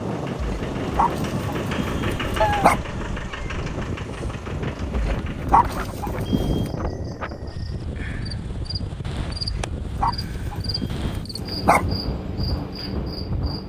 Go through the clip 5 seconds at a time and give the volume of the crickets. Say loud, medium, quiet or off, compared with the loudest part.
off, loud, loud.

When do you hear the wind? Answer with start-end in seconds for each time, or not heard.
0.0-13.6.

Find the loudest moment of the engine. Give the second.
2 s.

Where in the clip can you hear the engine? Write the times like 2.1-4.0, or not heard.
0.0-5.5.